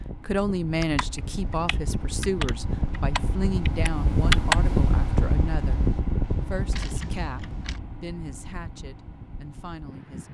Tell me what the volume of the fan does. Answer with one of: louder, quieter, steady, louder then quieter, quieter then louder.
louder then quieter.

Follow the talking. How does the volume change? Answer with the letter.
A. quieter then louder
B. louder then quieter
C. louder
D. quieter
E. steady
D.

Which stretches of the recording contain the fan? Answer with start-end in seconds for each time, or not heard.
0.0-10.2.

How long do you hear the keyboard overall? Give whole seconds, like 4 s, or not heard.
7 s.